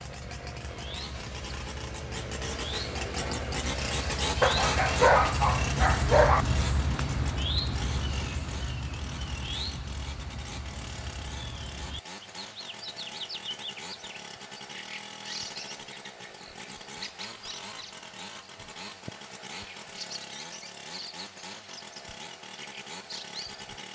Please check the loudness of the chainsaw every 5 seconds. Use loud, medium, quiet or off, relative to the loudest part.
loud, loud, medium, medium, medium.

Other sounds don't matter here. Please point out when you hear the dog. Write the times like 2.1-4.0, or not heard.
4.4-6.5.